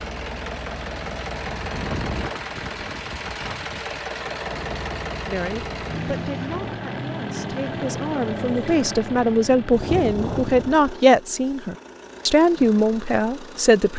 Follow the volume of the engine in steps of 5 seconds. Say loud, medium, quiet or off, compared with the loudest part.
loud, loud, medium.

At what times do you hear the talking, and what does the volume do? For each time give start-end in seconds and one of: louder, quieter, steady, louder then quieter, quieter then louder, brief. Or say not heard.
5.2-13.9 louder.